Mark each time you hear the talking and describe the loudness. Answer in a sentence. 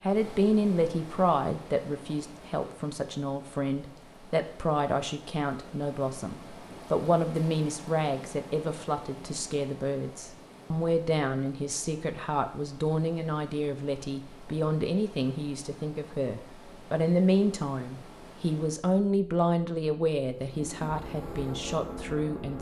You can hear the talking from 0.0 to 22.5 s, at a steady volume.